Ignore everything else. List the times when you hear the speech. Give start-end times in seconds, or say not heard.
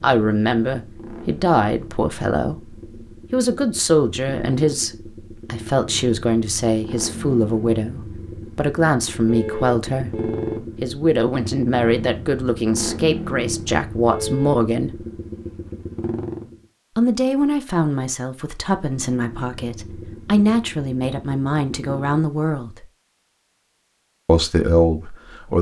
0.0-15.1, 16.9-22.9, 24.2-25.5.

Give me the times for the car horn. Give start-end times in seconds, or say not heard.
9.2-10.6, 14.1-14.7.